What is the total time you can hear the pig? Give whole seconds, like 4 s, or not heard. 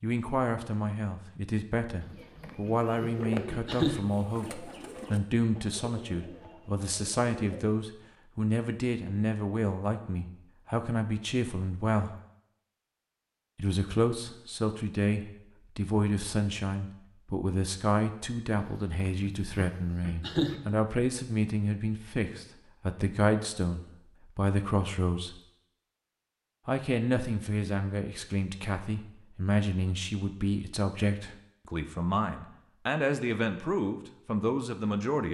4 s.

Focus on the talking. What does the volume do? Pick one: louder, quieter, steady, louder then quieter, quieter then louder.
steady.